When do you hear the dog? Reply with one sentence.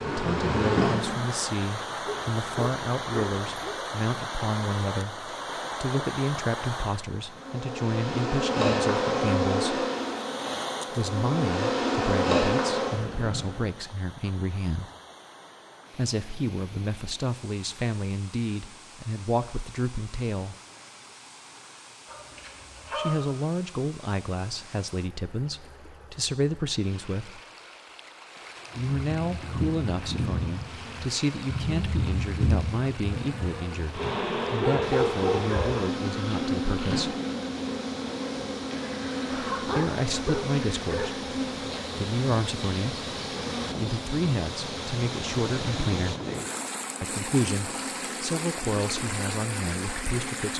The dog can be heard from 2.0 to 3.8 s, from 22.1 to 23.3 s, from 34.1 to 35.9 s and from 39.3 to 41.1 s.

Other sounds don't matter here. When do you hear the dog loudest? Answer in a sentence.
The volume of the dog peaks at 35 seconds.